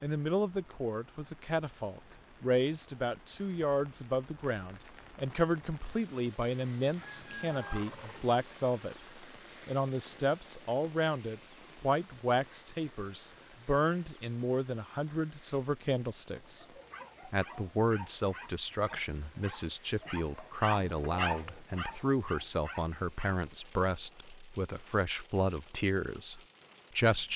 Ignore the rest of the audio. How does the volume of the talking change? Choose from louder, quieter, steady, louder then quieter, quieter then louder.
steady.